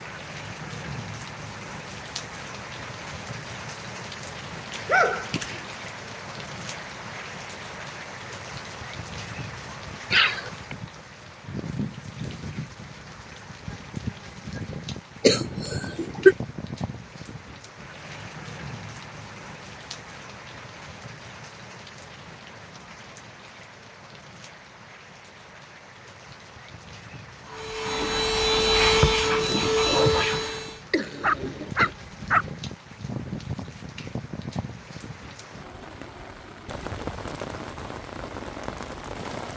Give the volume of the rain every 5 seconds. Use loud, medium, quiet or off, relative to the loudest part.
loud, loud, loud, loud, medium, medium, loud, loud.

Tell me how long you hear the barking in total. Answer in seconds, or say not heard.
2 s.